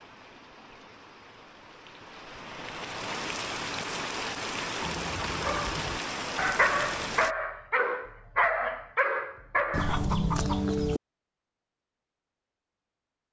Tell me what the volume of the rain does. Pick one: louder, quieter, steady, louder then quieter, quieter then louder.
louder.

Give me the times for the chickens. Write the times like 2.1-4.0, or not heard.
9.7-11.0.